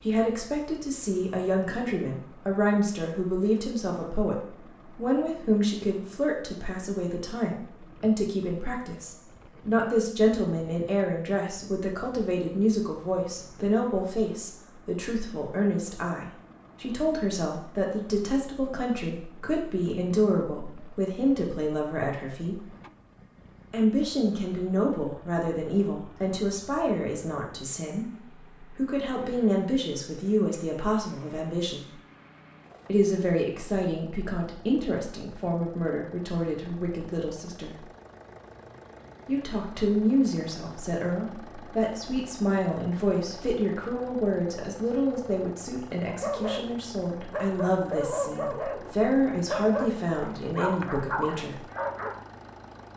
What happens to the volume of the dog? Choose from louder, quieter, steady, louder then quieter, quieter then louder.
steady.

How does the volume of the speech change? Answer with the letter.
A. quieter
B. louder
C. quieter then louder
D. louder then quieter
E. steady
E.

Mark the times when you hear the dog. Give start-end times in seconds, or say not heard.
46.0-52.1.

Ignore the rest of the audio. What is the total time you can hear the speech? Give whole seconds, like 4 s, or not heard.
48 s.